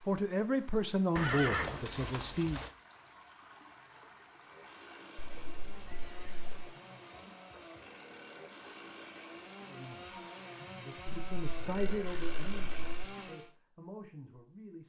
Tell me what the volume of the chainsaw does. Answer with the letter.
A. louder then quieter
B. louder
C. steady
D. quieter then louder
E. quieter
B.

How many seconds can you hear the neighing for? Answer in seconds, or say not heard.
5 s.